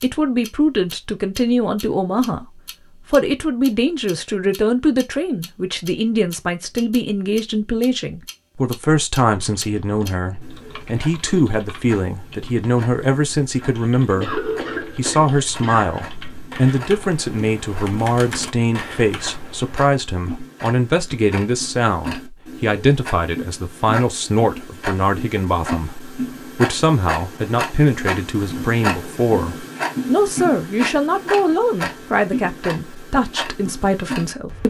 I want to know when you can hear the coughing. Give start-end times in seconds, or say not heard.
14.2-16.1.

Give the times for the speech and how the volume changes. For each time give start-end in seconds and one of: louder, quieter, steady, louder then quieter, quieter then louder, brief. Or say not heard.
0.0-2.5 brief
3.1-34.6 steady.